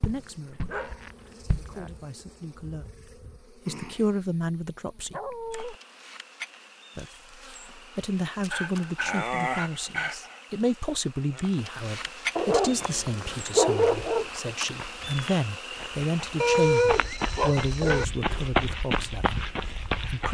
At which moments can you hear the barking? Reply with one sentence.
You can hear the barking from 0.5 to 1.9 s, from 5.1 to 5.8 s, from 8.4 to 10.3 s, from 12.3 to 14.2 s and from 16.4 to 18.1 s.